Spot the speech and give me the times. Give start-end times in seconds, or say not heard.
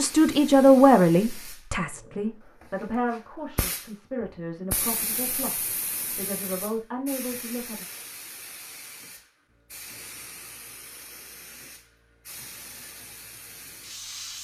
0.0-7.8.